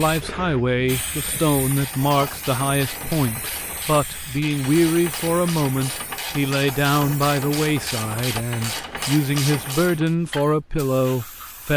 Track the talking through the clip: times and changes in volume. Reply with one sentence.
The talking can be heard from 0.0 to 11.7 s, at a steady volume.